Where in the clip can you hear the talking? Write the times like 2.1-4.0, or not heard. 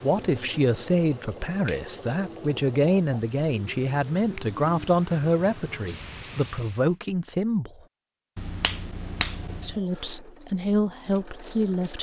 0.0-7.7, 9.6-11.9.